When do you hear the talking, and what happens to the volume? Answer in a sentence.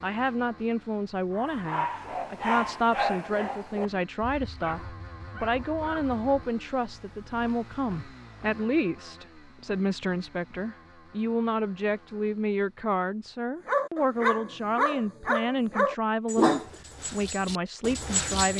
You can hear the talking from 0.0 to 18.5 s, at a steady volume.